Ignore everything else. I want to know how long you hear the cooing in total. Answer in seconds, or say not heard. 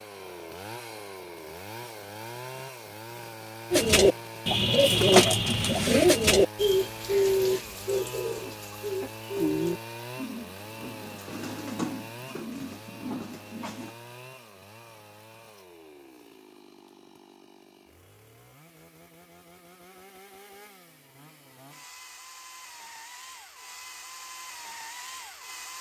10 s.